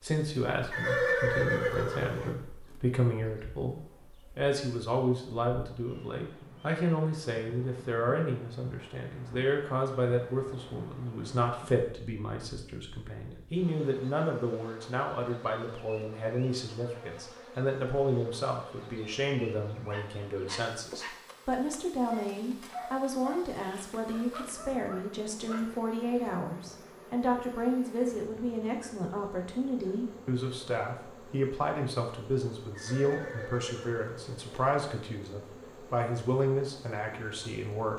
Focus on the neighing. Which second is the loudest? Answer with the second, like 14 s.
1 s.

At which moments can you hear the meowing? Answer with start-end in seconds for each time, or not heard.
not heard.